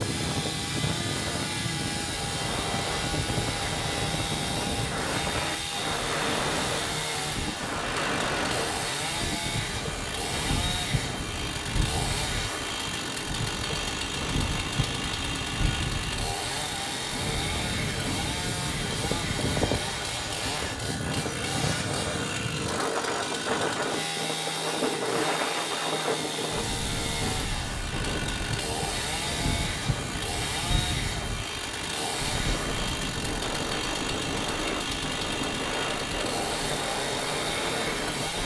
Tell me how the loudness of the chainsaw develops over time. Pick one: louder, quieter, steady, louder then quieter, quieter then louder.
steady.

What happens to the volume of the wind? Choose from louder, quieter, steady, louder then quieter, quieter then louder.
steady.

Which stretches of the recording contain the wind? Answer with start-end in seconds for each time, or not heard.
0.0-38.4.